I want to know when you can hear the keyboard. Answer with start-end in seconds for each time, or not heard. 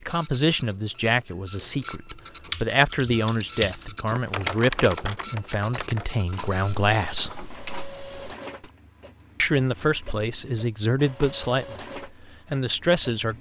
2.5-8.7.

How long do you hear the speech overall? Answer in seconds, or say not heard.
11 s.